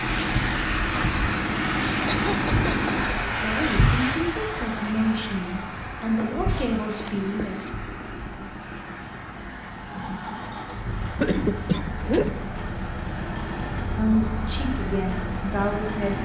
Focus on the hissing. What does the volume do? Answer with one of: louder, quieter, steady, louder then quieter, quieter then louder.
quieter.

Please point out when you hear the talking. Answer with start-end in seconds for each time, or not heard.
3.4-7.6, 13.9-16.1.